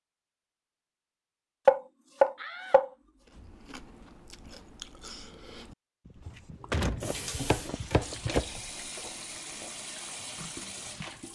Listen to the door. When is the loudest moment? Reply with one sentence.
The volume of the door peaks at 7 seconds.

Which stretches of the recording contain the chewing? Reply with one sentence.
You can hear the chewing from 3.2 to 9.8 s.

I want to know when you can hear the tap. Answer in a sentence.
You can hear the tap from 6.2 to 11.3 s.